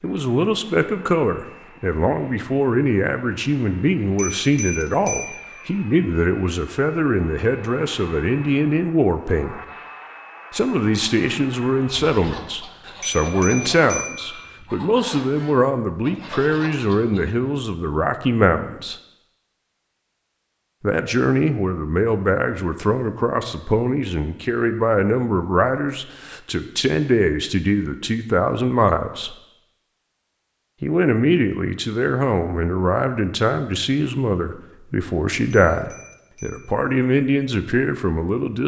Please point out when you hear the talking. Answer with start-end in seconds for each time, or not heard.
0.0-9.6, 10.5-18.9, 20.8-29.4, 30.8-38.6.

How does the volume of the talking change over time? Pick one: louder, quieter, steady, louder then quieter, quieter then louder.
steady.